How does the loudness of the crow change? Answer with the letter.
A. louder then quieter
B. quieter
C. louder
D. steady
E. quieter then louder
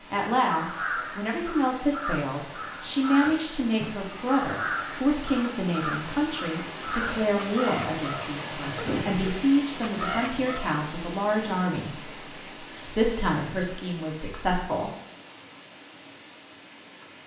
D.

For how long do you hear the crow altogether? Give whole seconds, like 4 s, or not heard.
10 s.